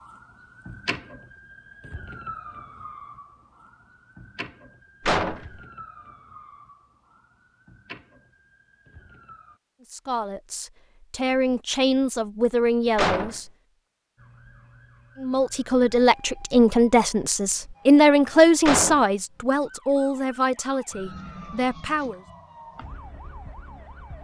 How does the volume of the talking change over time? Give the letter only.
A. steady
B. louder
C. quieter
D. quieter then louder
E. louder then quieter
E.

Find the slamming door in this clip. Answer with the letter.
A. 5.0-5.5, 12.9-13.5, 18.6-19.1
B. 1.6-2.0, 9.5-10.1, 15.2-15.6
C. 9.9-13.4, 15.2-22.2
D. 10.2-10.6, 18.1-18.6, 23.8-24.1
A.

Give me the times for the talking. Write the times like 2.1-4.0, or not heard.
9.9-13.4, 15.2-22.2.